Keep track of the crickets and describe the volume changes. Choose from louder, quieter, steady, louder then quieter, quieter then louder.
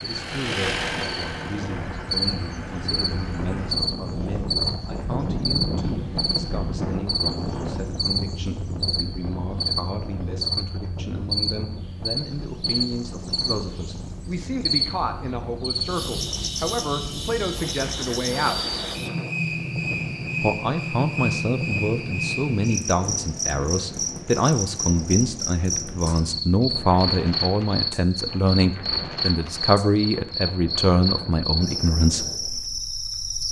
steady.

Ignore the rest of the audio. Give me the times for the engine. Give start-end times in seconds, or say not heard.
0.0-3.8.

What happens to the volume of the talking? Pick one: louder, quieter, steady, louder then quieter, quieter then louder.
louder.